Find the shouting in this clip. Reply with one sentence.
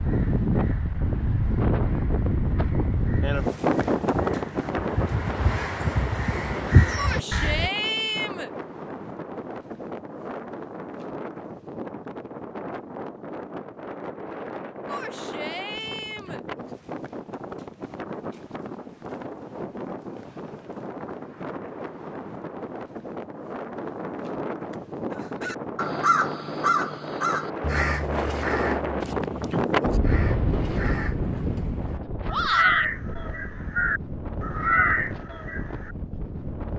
The shouting can be heard from 7.0 to 8.5 s, from 14.8 to 16.4 s and from 32.3 to 32.9 s.